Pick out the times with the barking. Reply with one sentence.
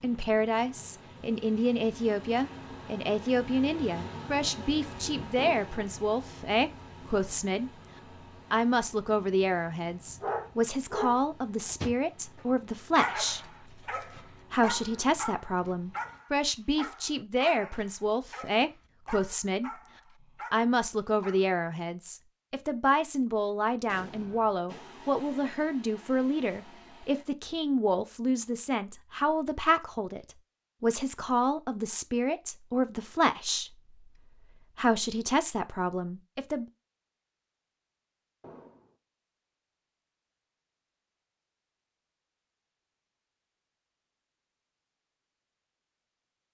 You can hear the barking from 10.1 to 21.6 s.